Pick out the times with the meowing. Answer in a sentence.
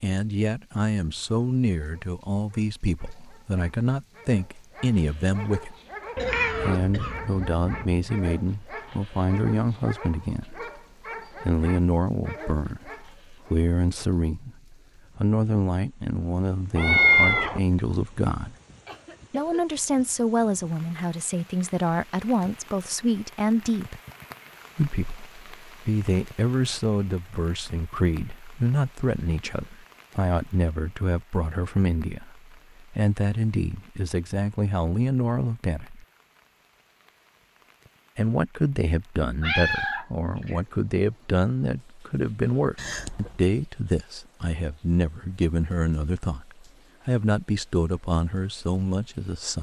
The meowing can be heard from 6.2 to 8.0 s, from 16.8 to 17.6 s and from 39.4 to 40.6 s.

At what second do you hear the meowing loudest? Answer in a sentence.
The volume of the meowing peaks at 17 seconds.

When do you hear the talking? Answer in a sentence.
You can hear the talking from 0.0 to 5.8 s, from 6.5 to 10.7 s, from 11.4 to 18.6 s, from 19.3 to 24.0 s, from 24.8 to 36.0 s and from 38.1 to 49.5 s.